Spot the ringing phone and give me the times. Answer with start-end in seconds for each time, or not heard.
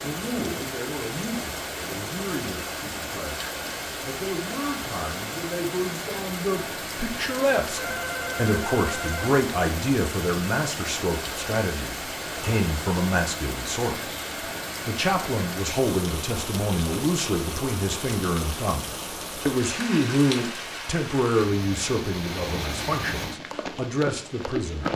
7.8-9.3.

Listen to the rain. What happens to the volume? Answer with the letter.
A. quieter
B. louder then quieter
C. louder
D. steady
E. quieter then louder
D.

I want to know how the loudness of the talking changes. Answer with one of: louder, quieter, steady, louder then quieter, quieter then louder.
louder.